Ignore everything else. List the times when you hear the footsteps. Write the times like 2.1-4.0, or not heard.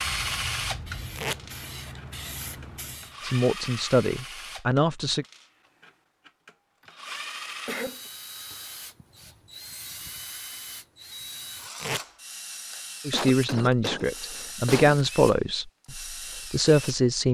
not heard.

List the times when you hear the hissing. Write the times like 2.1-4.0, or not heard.
0.1-3.1.